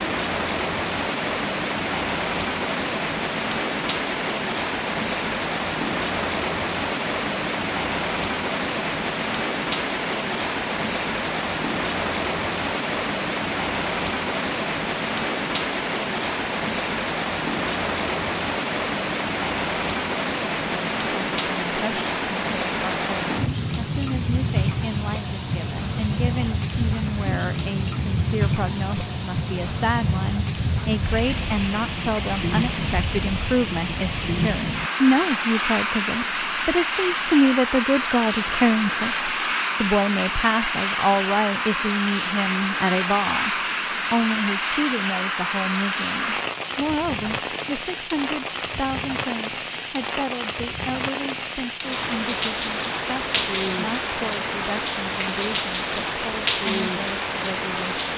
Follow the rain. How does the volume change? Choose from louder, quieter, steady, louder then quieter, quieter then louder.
steady.